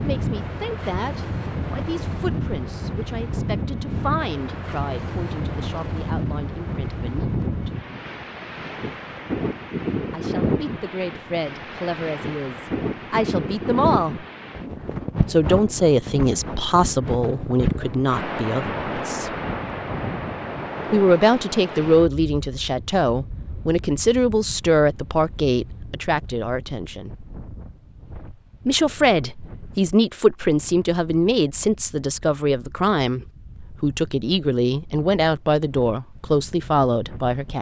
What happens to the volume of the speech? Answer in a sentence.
The loudness of the speech goes up.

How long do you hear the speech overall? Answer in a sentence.
You can hear the speech for 31 seconds altogether.